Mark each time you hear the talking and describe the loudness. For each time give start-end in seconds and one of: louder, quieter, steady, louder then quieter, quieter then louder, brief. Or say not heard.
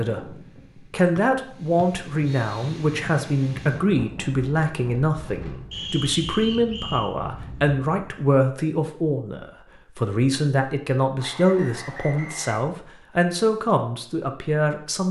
0.0-15.0 steady.